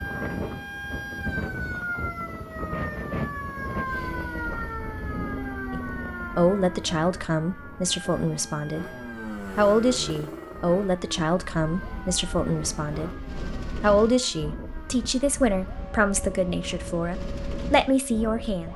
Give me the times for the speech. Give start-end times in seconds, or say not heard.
5.7-18.7.